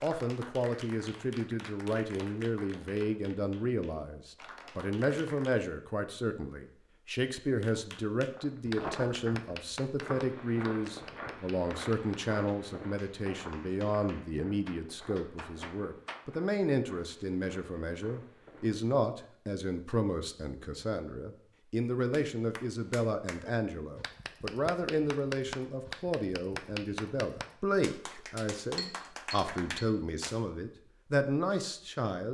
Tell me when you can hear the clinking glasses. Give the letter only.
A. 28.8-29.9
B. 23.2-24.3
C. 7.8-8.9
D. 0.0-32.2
A.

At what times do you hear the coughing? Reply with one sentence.
You can't hear the coughing here.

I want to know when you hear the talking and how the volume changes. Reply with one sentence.
You can hear the talking from 0.0 to 32.2 s, at a steady volume.